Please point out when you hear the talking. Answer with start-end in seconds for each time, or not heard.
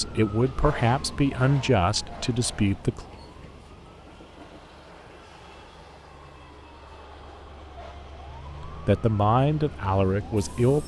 0.0-3.0, 8.7-10.8.